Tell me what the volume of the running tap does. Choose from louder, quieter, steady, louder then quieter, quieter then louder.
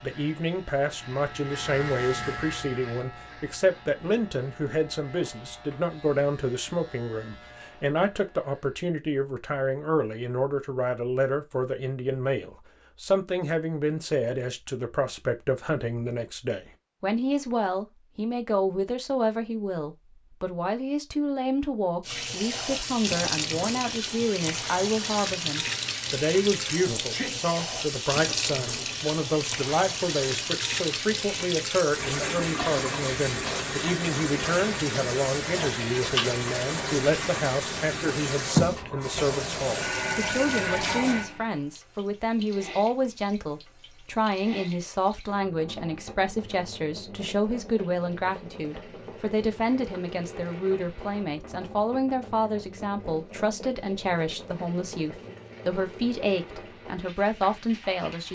quieter.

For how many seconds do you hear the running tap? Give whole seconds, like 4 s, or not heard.
36 s.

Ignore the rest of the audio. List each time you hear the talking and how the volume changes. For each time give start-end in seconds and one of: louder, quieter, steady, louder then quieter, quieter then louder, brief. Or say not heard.
0.0-58.3 steady.